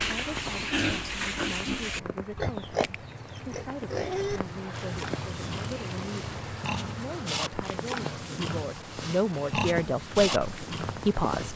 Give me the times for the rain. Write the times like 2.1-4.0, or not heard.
0.1-11.5.